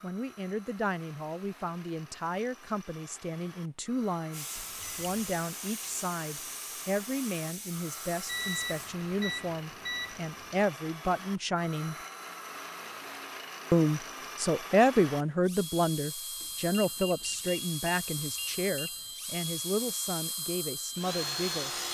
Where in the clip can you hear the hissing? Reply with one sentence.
The hissing can be heard from 4.3 to 8.9 s.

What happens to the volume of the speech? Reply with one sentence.
The loudness of the speech goes up, then down.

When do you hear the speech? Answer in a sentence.
You can hear the speech from 0.0 to 11.9 s and from 13.7 to 21.7 s.